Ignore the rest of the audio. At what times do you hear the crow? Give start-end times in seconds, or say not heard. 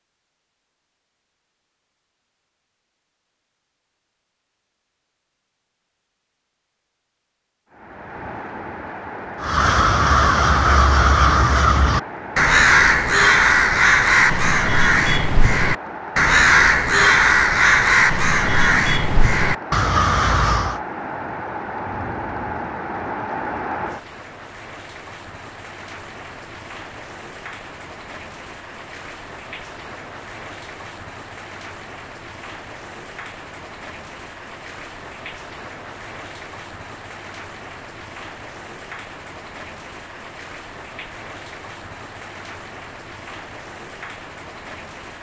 9.4-20.8.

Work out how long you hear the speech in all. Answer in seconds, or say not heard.
not heard.